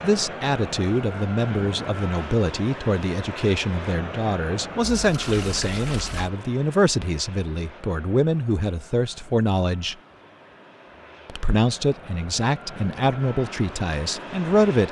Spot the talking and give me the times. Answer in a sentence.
The talking can be heard from 0.0 to 9.9 s and from 11.2 to 14.8 s.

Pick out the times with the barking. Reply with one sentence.
The barking can't be heard in this clip.